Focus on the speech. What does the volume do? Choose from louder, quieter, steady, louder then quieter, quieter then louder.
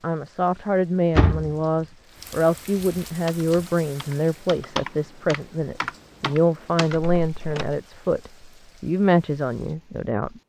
steady.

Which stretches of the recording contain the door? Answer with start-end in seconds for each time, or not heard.
1.1-1.6, 6.9-7.8.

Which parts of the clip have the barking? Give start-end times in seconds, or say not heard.
not heard.